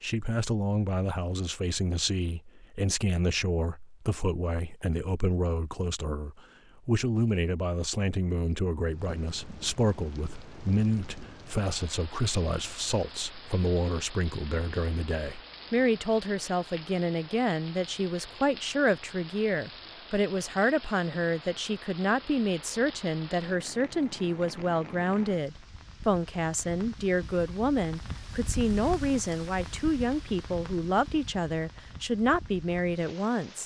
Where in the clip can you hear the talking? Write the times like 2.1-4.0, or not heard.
0.0-33.6.